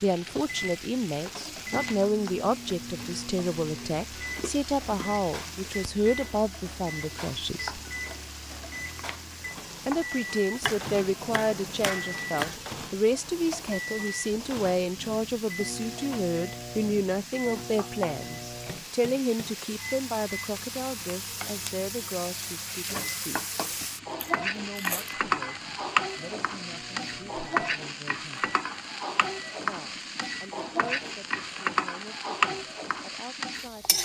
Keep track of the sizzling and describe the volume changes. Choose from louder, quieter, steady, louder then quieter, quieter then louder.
louder.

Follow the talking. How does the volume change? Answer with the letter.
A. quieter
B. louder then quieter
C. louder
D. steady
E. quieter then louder
A.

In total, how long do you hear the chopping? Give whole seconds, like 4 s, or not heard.
2 s.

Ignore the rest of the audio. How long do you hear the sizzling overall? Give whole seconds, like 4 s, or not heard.
34 s.